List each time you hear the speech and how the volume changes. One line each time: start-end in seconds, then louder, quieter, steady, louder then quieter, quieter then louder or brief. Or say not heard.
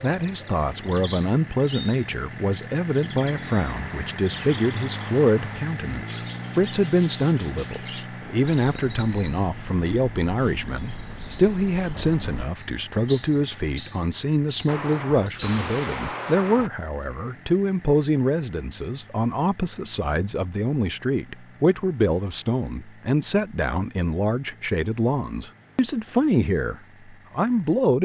0.0-28.0 steady.